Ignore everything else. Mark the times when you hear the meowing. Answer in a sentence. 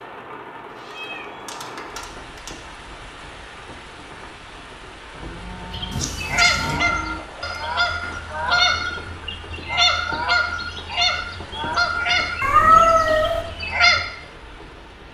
The meowing can be heard from 0.8 to 2.8 s, from 5.9 to 6.8 s and from 12.4 to 13.4 s.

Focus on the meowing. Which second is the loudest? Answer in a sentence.
The loudest moment of the meowing is at 13 seconds.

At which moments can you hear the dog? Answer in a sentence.
The dog can't be heard in this clip.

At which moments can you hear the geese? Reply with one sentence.
You can hear the geese from 5.7 to 14.0 s.